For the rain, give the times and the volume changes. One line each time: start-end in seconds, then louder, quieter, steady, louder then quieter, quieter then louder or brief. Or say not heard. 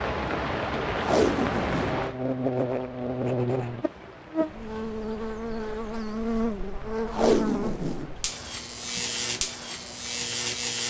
0.0-10.8 quieter.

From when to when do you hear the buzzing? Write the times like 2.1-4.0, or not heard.
1.6-10.8.